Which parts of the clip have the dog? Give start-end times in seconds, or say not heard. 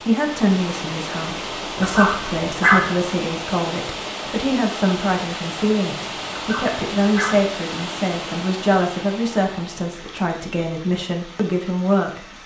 1.8-3.0, 6.3-7.5.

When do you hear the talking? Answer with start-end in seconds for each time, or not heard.
0.1-12.2.